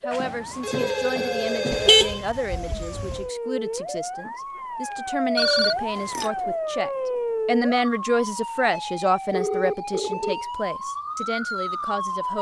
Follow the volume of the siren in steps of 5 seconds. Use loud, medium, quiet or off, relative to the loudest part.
medium, loud, loud.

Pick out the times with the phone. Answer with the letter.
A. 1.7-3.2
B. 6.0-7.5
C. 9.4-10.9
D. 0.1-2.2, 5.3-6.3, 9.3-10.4
D.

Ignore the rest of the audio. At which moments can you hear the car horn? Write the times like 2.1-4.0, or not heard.
1.7-3.2.